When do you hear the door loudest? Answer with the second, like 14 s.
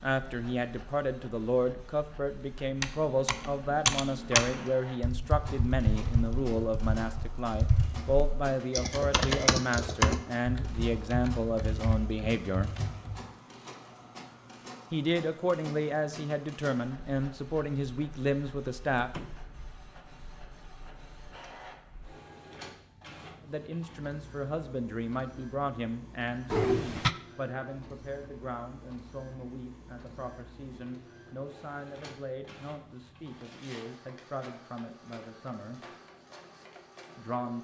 27 s.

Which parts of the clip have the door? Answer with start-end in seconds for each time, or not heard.
4.1-4.8, 18.9-19.4, 26.5-27.1.